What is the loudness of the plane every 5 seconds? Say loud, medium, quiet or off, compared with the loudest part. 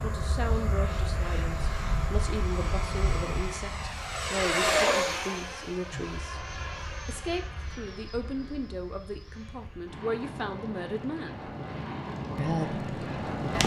loud, medium, loud.